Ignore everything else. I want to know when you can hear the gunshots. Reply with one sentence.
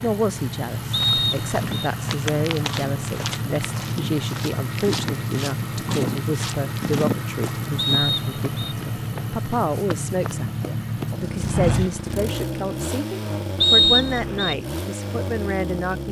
The gunshots can't be heard in this clip.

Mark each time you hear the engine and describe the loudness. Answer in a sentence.
The engine can be heard from 0.0 to 16.0 s, at a steady volume.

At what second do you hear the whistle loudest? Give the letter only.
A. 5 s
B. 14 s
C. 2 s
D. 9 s
B.